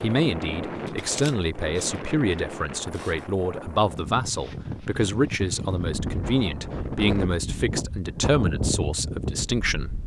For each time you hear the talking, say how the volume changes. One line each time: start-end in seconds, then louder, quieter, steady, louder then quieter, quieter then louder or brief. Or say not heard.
0.0-9.9 steady.